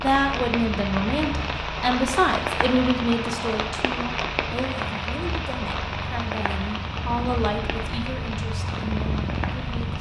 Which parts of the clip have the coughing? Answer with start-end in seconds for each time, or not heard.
not heard.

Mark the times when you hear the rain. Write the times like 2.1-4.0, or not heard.
0.0-9.9.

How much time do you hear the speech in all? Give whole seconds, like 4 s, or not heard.
10 s.